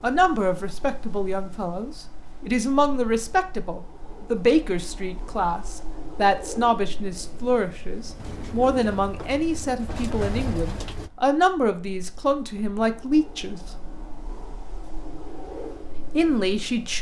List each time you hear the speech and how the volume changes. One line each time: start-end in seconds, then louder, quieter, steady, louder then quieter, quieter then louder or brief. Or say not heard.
0.0-13.6 steady
16.0-16.9 brief.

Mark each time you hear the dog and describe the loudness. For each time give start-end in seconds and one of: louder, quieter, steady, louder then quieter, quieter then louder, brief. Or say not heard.
not heard.